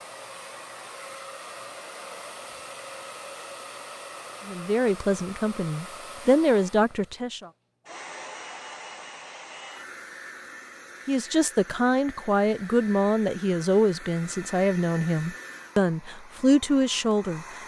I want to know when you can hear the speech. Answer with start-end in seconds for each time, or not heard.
4.5-7.5, 11.1-17.4.